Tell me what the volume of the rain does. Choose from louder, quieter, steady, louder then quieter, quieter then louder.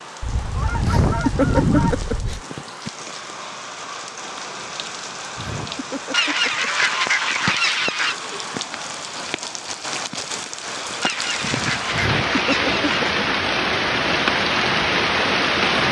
louder.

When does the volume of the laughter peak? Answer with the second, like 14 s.
1 s.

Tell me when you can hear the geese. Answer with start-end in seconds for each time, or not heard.
0.2-2.4, 6.1-8.2, 11.0-13.2.